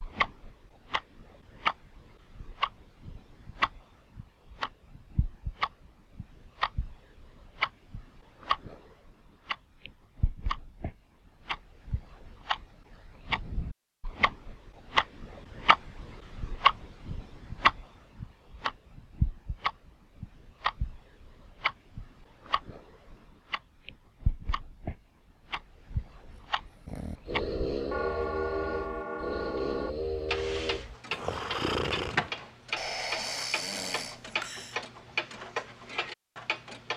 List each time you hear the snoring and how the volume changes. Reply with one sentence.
You can hear the snoring from 26.4 to 34.8 s, at a steady volume.